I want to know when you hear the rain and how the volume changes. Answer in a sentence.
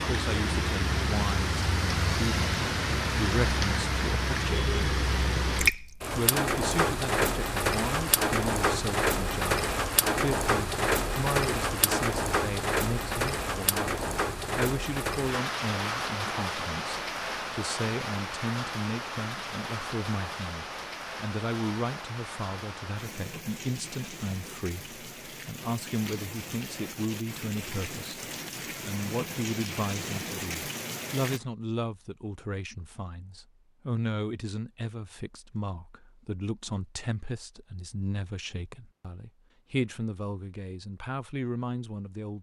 You can hear the rain from 0.0 to 31.4 s, getting quieter.